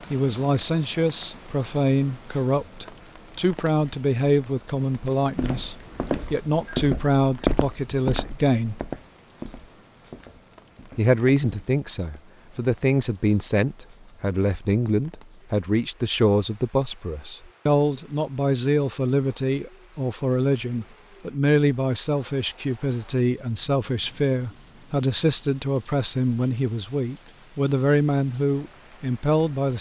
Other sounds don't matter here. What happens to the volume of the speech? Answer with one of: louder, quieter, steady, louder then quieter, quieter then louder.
steady.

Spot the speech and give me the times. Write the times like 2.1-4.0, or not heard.
0.1-8.8, 10.9-29.7.